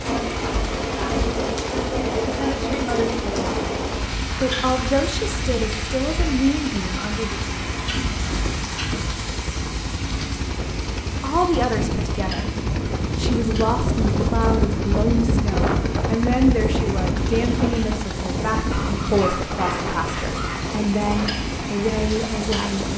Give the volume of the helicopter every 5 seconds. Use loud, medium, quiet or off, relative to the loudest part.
medium, medium, loud, loud, medium.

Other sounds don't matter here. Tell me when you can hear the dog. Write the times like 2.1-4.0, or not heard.
18.7-20.7.